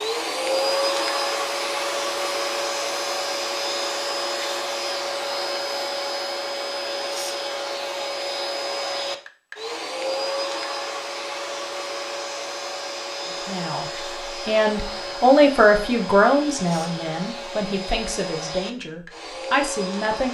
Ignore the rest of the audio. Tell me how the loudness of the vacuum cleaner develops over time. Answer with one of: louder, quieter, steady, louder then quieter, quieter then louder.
quieter.